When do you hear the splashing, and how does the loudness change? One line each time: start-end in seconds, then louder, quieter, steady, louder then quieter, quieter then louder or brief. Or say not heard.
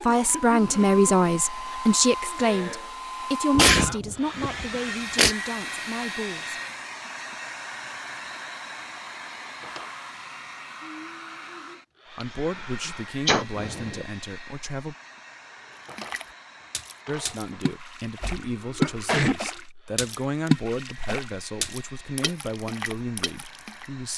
15.8-23.9 louder then quieter.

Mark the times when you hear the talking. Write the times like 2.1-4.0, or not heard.
0.0-6.6, 12.1-14.9, 17.1-24.1.